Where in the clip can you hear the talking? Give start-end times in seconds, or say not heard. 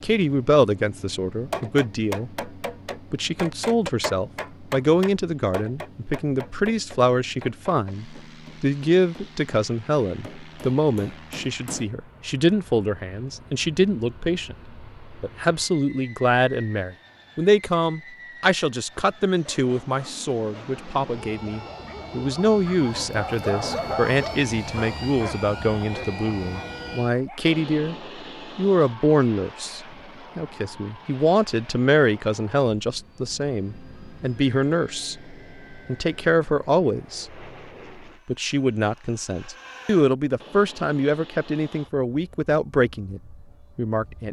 0.0-2.5, 3.1-27.9, 28.6-37.5, 38.2-44.2.